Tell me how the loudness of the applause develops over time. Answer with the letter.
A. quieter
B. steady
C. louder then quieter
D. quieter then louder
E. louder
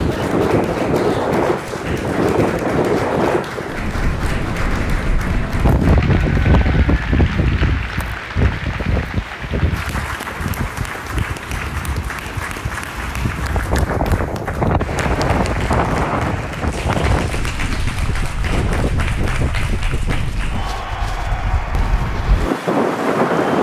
B.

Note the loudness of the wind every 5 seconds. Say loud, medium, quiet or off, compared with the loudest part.
loud, loud, medium, loud, loud.